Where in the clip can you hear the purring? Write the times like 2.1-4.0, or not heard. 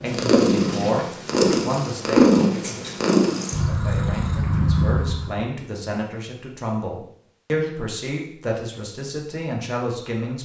0.0-5.4.